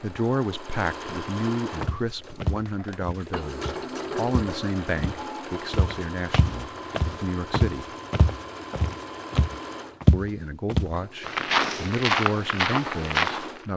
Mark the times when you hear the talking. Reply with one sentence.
The talking can be heard from 0.0 to 7.9 s and from 10.1 to 13.7 s.